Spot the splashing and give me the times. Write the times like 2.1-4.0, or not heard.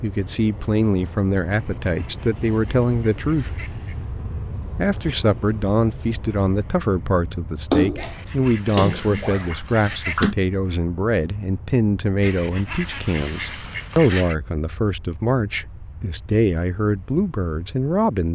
7.7-10.3.